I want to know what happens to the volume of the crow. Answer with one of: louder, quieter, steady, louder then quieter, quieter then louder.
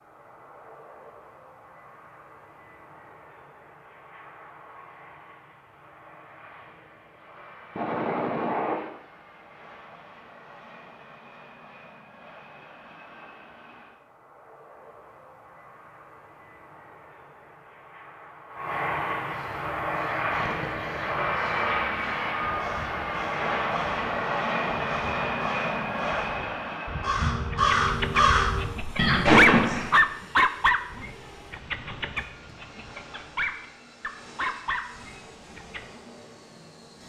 louder.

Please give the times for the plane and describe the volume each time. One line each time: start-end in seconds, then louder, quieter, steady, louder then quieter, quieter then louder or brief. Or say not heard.
0.0-37.0 louder then quieter.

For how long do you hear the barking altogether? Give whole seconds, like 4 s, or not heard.
8 s.